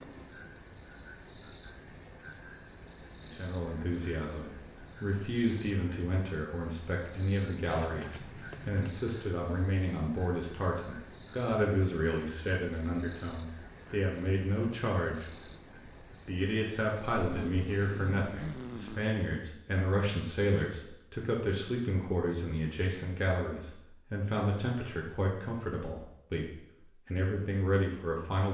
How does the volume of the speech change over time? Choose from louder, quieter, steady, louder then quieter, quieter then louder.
steady.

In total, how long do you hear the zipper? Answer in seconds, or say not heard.
3 s.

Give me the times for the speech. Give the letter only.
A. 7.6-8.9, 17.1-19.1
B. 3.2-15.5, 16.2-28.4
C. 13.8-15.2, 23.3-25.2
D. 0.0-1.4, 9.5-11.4
B.